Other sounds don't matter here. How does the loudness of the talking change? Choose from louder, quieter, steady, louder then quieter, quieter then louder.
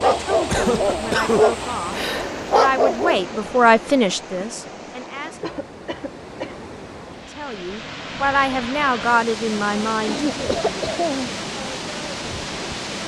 louder then quieter.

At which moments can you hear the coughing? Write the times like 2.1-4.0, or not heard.
0.5-1.4, 5.4-6.7, 10.1-11.3.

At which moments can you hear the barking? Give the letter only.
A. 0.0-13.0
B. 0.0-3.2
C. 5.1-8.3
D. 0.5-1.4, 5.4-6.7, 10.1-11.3
B.